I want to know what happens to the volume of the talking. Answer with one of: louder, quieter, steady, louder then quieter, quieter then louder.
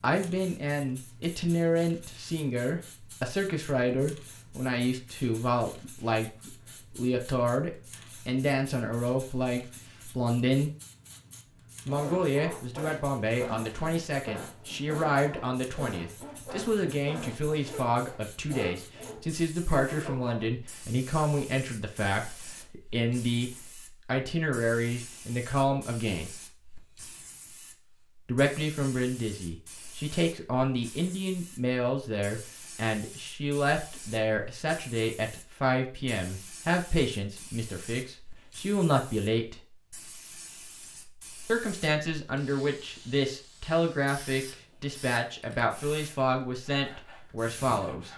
steady.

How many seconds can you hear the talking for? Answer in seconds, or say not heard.
43 s.